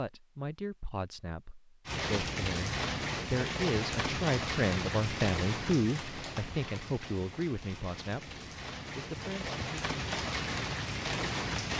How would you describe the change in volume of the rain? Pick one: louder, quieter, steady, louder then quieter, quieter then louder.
quieter then louder.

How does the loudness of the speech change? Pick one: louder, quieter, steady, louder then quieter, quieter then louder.
louder then quieter.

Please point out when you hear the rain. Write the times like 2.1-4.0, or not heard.
1.9-11.7.